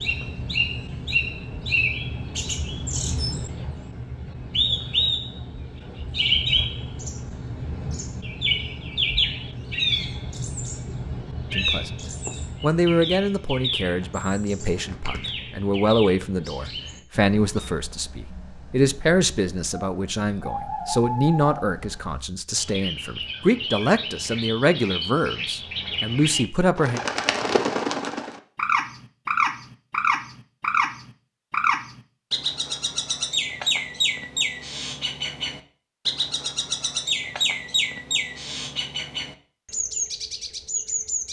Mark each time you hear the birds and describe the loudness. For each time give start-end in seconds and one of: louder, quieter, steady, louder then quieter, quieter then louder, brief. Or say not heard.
0.0-41.2 quieter then louder.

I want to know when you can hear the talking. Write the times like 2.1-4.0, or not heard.
11.5-11.9, 12.6-27.0.